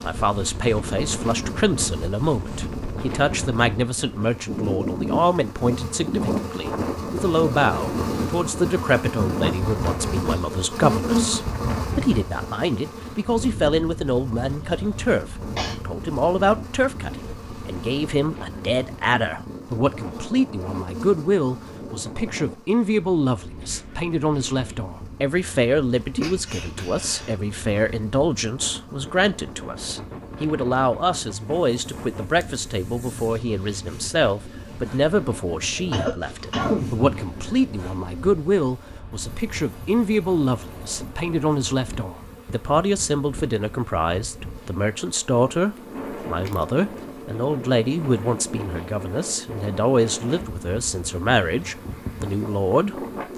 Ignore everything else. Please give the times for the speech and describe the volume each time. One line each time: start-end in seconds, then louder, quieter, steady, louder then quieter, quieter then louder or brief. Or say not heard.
0.0-53.3 steady.